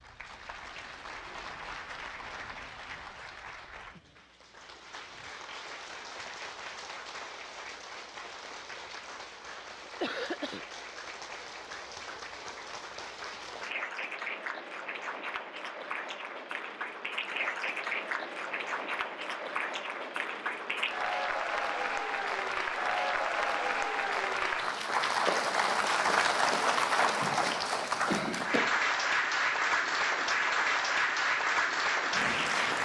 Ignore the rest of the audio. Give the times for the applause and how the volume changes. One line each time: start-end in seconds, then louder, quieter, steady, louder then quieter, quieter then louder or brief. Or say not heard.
0.0-32.8 louder.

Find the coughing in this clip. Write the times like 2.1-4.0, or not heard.
9.8-10.7, 27.2-28.8.